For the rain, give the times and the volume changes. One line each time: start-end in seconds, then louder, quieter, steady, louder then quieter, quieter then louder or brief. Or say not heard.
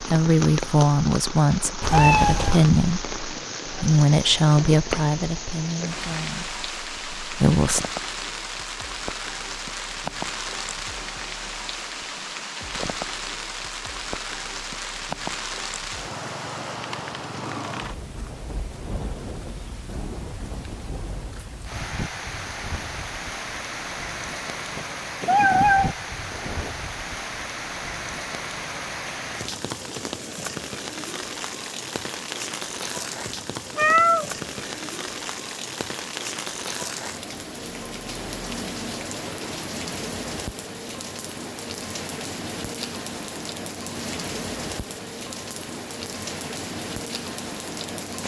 0.0-48.2 steady.